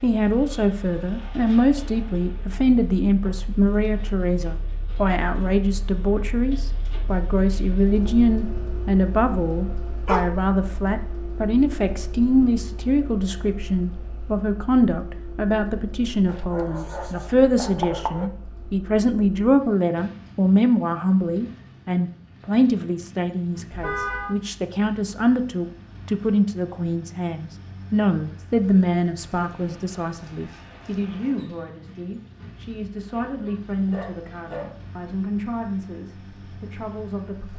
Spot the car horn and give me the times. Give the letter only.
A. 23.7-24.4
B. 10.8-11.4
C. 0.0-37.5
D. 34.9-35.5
A.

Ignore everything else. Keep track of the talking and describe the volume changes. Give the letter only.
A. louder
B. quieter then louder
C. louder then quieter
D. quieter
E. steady
D.